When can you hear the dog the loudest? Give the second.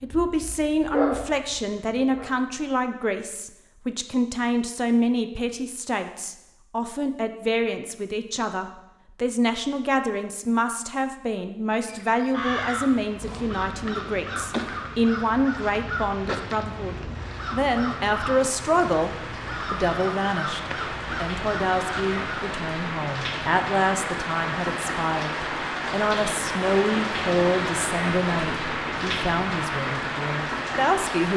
1 s.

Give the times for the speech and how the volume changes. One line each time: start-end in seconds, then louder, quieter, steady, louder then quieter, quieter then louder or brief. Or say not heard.
0.0-31.3 steady.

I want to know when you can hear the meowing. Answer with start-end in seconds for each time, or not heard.
not heard.